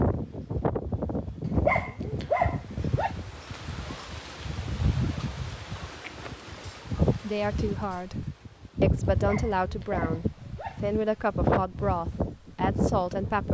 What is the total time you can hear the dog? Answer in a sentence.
You can hear the dog for 4 seconds altogether.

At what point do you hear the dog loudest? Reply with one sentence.
The volume of the dog peaks at 2 seconds.